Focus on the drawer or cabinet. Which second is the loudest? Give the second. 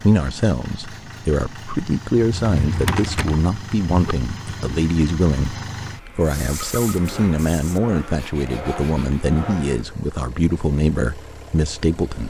3 s.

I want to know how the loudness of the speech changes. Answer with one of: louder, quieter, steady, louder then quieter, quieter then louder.
steady.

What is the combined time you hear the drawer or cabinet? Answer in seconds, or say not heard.
2 s.